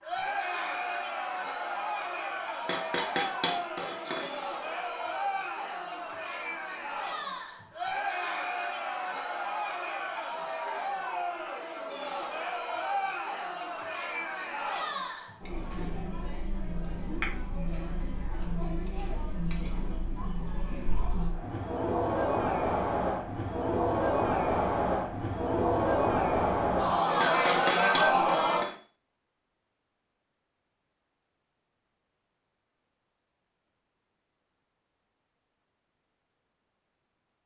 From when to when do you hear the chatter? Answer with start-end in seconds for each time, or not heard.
0.0-28.6.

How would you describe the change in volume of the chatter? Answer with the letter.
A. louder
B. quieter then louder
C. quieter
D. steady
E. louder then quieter
A.